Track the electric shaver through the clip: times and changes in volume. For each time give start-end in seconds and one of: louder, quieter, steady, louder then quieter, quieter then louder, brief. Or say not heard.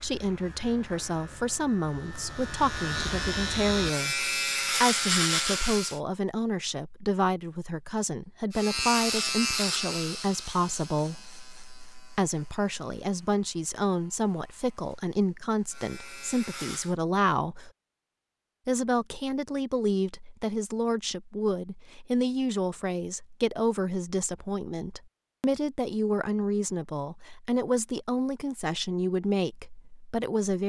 0.0-6.0 louder
8.5-16.9 quieter then louder.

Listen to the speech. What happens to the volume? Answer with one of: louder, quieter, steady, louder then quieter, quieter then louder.
steady.